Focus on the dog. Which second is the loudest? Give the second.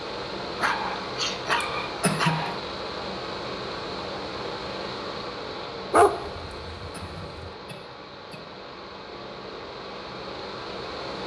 6 s.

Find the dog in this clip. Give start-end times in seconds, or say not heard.
0.6-2.6, 5.9-7.5.